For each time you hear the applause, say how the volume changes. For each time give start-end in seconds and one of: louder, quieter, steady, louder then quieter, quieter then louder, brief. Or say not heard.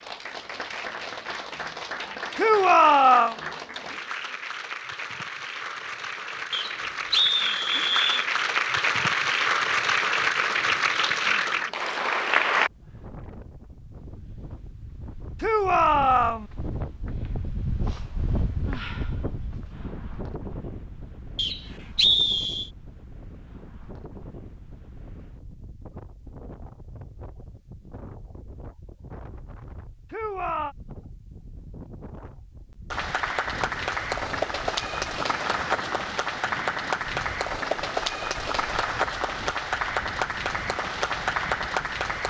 0.0-12.7 louder
32.9-42.2 steady.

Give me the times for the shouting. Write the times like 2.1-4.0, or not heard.
2.4-3.4, 15.4-16.4, 30.1-30.8.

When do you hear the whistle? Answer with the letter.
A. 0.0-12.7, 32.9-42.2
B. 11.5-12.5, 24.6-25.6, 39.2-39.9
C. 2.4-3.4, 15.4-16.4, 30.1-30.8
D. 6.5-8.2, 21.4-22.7
D.